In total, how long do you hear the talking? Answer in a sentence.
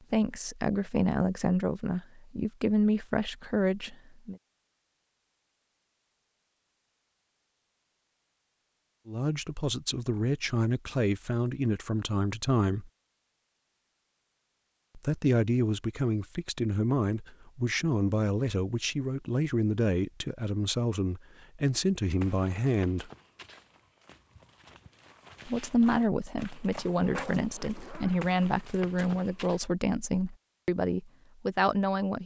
The talking can be heard for 23 seconds in total.